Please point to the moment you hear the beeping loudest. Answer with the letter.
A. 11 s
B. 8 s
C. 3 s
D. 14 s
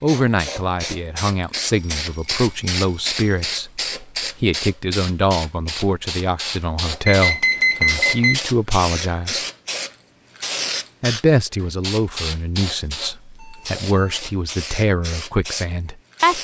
B.